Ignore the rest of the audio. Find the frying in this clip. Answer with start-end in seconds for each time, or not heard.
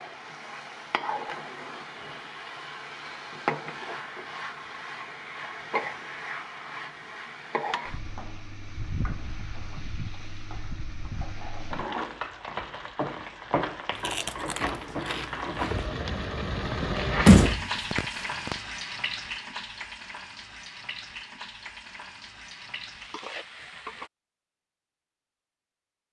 0.0-24.1.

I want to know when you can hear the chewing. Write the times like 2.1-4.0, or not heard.
13.9-15.9.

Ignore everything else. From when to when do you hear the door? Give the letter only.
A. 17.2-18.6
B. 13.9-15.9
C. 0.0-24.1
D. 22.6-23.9
A.